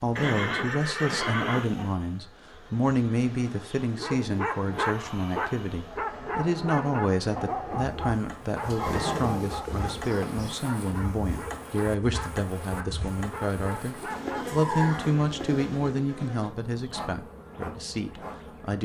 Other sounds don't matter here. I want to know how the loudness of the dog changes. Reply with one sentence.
The loudness of the dog goes down.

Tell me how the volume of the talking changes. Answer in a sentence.
The volume of the talking stays about the same.